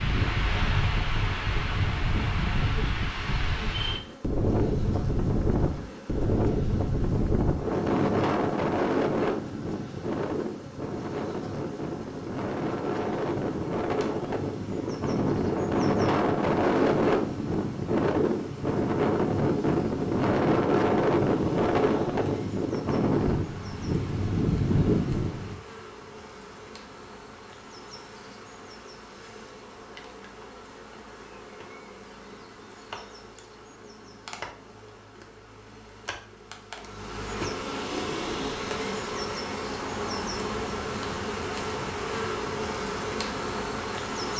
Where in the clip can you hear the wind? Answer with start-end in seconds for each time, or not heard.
0.0-25.6.